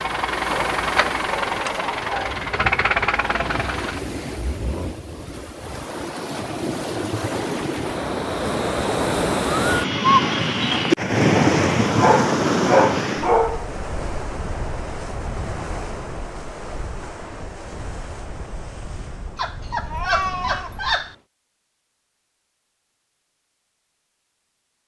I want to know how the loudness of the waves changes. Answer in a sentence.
The volume of the waves goes up, then down.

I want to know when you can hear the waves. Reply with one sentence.
The waves can be heard from 0.0 to 21.2 s.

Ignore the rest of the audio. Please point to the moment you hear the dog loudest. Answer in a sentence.
The volume of the dog peaks at 13 seconds.